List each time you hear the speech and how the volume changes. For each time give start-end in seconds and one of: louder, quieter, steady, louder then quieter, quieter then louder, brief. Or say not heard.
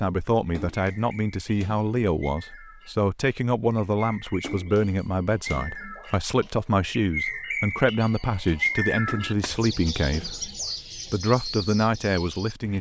0.0-10.5 steady
11.1-12.7 brief.